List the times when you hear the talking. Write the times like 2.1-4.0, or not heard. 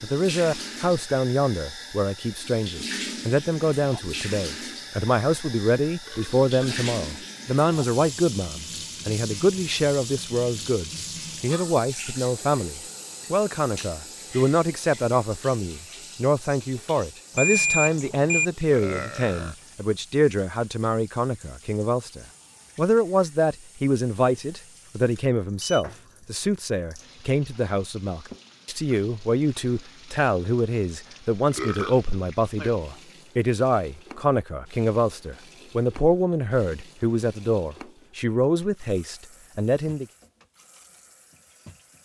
0.0-40.0.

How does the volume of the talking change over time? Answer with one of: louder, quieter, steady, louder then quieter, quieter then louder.
steady.